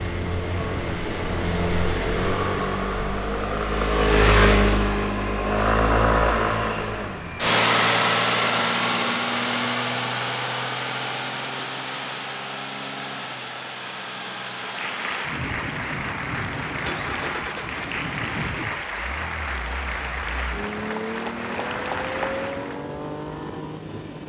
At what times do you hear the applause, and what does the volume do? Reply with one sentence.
You can hear the applause from 14.6 to 22.9 s, at a steady volume.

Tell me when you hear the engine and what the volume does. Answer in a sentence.
You can hear the engine from 0.0 to 24.2 s, getting quieter.